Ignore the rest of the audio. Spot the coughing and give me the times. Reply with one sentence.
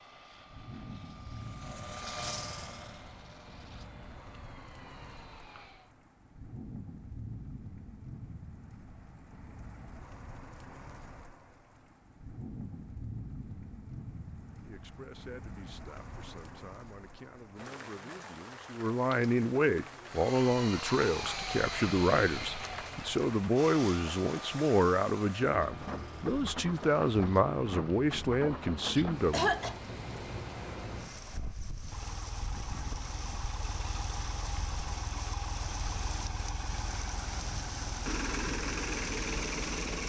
You can hear the coughing from 28.1 to 29.8 s.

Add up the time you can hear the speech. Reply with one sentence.
You can hear the speech for 15 seconds altogether.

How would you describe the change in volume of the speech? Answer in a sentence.
The volume of the speech goes up.